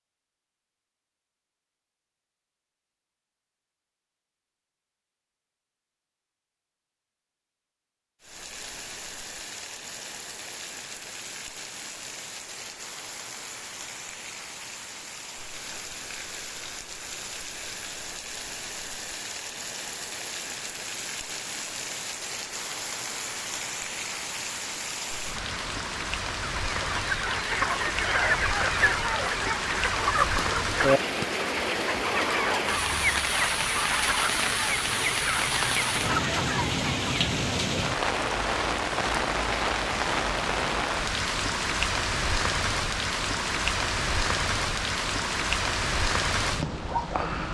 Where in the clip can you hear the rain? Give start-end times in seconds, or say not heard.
8.2-47.4.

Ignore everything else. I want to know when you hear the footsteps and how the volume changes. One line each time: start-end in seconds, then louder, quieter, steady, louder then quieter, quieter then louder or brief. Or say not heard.
not heard.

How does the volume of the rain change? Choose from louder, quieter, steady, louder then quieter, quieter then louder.
louder.